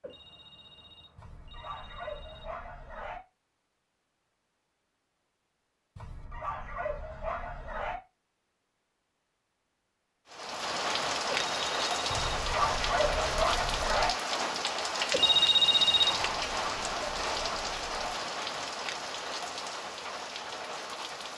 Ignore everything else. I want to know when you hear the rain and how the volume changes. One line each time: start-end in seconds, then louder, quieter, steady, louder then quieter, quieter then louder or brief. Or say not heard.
10.3-21.3 quieter.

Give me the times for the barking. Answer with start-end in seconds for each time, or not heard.
1.1-3.2, 6.0-8.0, 12.1-14.1, 16.1-18.1.